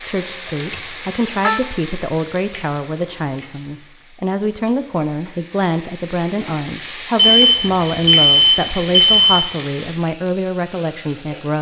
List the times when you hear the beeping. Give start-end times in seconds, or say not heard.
0.7-1.6, 7.2-9.3.